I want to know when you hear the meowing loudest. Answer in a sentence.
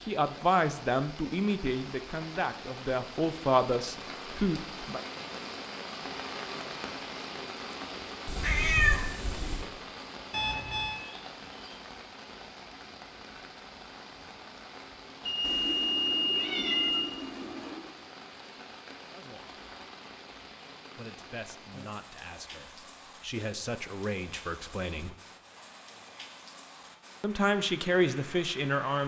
The volume of the meowing peaks at 9 seconds.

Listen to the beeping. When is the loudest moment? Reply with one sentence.
The volume of the beeping peaks at 16 seconds.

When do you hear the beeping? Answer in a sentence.
The beeping can be heard from 10.3 to 11.0 s and from 15.2 to 17.2 s.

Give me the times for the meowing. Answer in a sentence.
The meowing can be heard from 8.2 to 9.7 s and from 15.4 to 17.9 s.